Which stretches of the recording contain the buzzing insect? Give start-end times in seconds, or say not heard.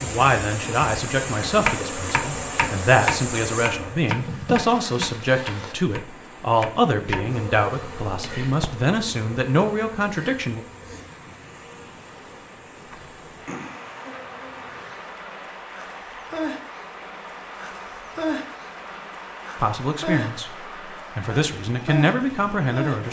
0.0-23.0.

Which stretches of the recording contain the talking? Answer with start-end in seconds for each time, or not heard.
0.0-10.7, 19.6-23.0.